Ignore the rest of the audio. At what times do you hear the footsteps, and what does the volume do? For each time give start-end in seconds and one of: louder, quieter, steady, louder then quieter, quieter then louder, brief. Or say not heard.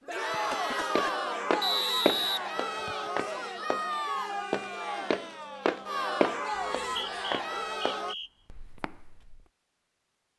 0.9-3.9 brief
4.5-9.4 quieter.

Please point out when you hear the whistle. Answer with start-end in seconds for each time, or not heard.
1.6-3.1, 6.5-8.3.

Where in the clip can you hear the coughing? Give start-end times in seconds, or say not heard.
0.3-1.3.